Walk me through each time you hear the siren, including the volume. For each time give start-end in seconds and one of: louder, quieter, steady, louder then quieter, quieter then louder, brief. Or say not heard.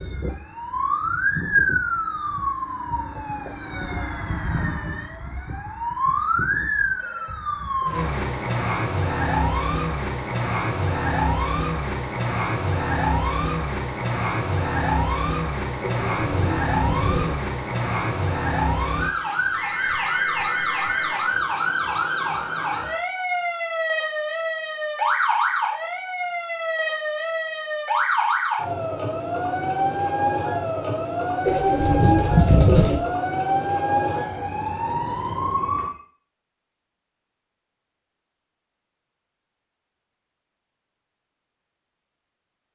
0.0-35.9 steady.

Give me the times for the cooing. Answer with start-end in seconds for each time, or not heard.
15.8-17.4, 31.4-33.0.